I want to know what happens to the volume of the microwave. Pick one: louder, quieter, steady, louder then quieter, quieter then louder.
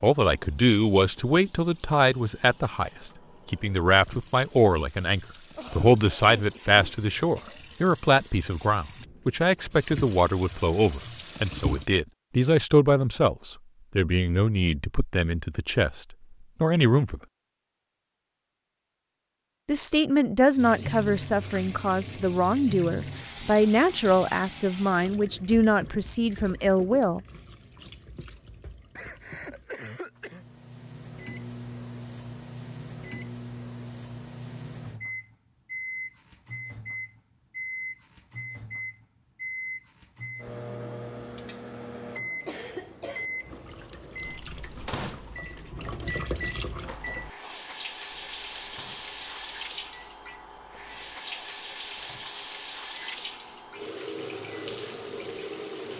quieter.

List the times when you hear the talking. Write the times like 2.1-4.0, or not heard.
0.0-17.2, 19.6-27.2.